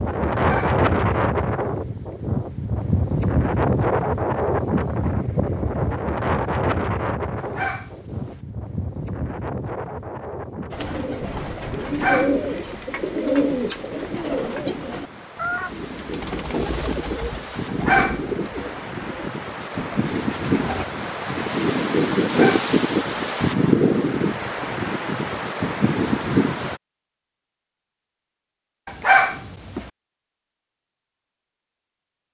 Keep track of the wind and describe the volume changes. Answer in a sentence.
The volume of the wind goes down, then up.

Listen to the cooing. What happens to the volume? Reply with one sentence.
The loudness of the cooing goes down.